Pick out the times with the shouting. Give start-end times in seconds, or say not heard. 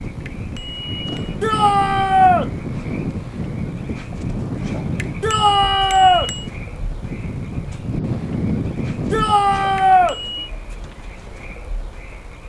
1.4-2.5, 5.2-6.3, 9.1-10.2.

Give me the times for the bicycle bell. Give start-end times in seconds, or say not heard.
0.2-1.4, 5.0-6.5, 9.8-10.5.